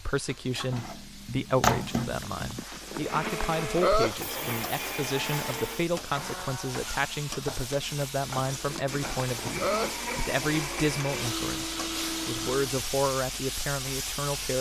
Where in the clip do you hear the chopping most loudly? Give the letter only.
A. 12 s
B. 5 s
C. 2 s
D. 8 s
C.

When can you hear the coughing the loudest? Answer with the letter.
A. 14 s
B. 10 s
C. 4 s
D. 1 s
C.